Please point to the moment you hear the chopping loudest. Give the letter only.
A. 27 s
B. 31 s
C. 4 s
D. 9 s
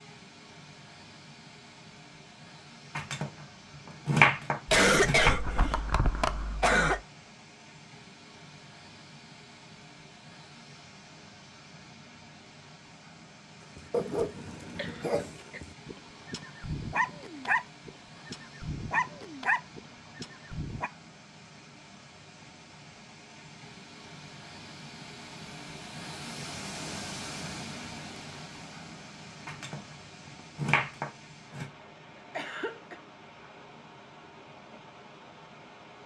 C.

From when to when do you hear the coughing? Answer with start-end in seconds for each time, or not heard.
4.7-7.0, 14.8-15.6, 32.4-33.0.